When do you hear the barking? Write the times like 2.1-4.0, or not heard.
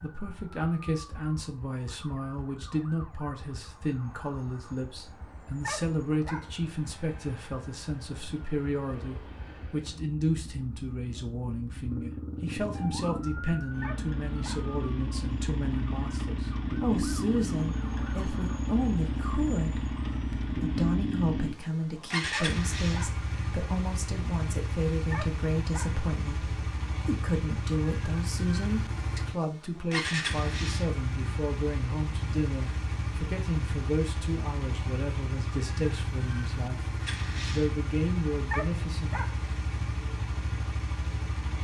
5.6-6.5, 13.8-14.7, 22.3-23.2, 25.1-26.0, 38.5-39.4.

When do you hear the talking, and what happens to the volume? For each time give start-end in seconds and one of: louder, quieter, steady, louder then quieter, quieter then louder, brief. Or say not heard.
0.0-39.1 steady.